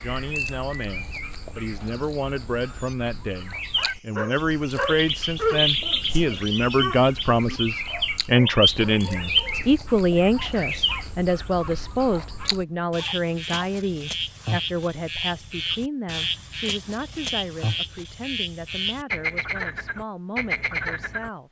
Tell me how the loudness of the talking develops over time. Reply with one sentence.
The volume of the talking goes up, then down.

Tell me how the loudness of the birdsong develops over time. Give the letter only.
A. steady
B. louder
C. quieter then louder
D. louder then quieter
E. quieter
B.